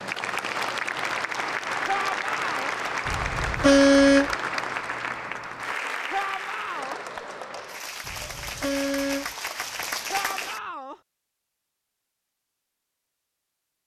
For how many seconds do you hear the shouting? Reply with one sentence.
You can hear the shouting for 3 seconds altogether.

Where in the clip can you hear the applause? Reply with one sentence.
You can hear the applause from 0.0 to 10.6 s.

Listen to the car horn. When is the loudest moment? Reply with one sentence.
The volume of the car horn peaks at 4 seconds.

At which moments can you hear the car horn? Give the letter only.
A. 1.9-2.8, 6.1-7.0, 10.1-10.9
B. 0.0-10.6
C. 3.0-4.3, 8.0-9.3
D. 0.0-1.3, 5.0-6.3
C.